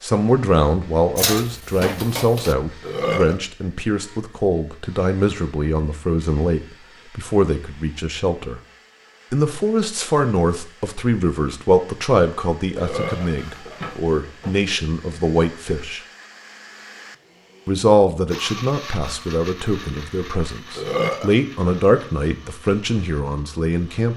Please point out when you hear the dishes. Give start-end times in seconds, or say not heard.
1.1-2.5, 13.0-14.6.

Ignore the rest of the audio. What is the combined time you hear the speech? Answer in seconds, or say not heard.
22 s.